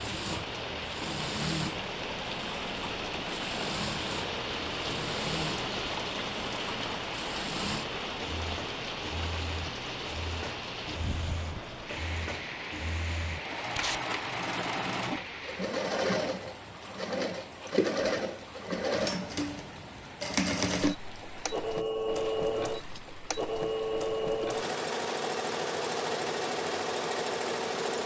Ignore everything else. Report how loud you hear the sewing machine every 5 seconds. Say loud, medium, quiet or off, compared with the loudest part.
medium, medium, medium, loud, loud, loud.